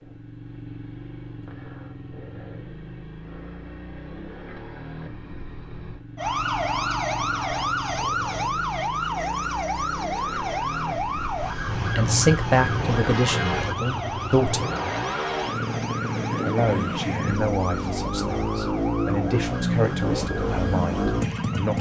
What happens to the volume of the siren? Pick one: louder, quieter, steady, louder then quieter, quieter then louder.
quieter.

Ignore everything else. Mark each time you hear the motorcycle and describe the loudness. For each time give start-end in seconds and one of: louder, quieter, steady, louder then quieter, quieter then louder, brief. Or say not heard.
0.0-21.7 louder.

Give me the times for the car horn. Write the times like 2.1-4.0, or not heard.
11.7-13.7.